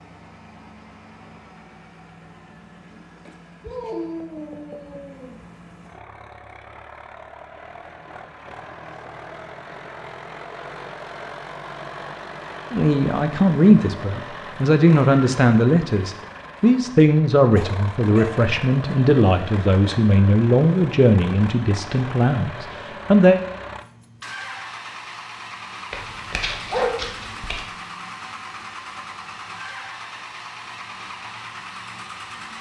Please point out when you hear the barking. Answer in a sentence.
You can hear the barking from 3.6 to 5.3 s, from 17.5 to 18.2 s and from 25.9 to 27.6 s.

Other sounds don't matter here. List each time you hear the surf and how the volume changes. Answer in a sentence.
The surf can't be heard in this clip.